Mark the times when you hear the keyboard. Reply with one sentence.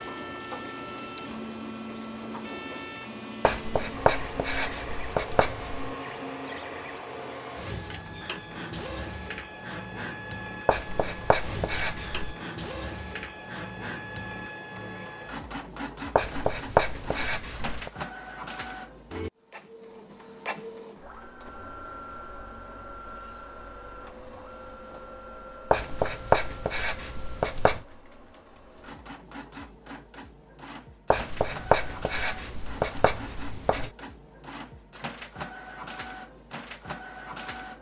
You can't hear the keyboard here.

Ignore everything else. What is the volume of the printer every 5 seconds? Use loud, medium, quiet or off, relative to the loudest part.
loud, loud, loud, loud, medium, medium, medium, loud.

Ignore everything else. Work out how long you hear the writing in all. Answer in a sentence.
The writing can be heard for 11 seconds in total.